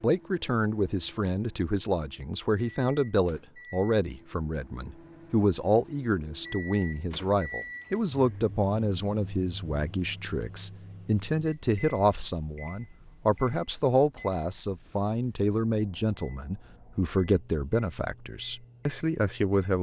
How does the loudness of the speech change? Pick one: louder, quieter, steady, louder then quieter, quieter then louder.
steady.